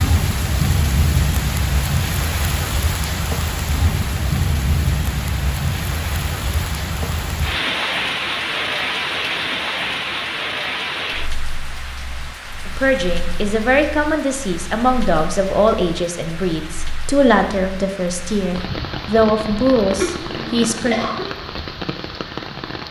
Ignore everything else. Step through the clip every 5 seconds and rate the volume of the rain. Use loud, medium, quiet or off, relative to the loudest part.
loud, loud, medium, medium, medium.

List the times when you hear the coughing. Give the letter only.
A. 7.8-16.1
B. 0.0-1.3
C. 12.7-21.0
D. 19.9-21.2
D.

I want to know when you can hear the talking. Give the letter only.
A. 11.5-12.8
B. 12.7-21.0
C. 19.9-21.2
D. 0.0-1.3
B.